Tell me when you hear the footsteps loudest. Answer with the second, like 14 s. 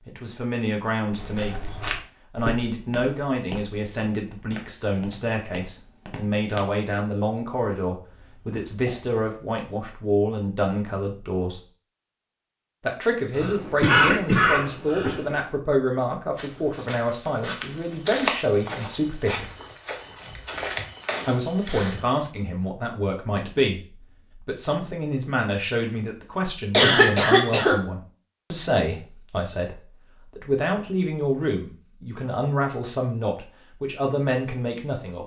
18 s.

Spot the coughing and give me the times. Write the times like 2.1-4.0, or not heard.
8.1-9.1, 13.3-15.3, 26.7-27.8.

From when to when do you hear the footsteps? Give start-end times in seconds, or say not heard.
1.1-6.8, 16.4-22.1.